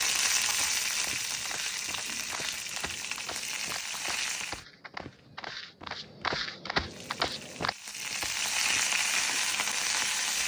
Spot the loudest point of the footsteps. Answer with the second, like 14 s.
7 s.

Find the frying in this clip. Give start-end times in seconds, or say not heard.
0.0-4.7, 6.8-10.4.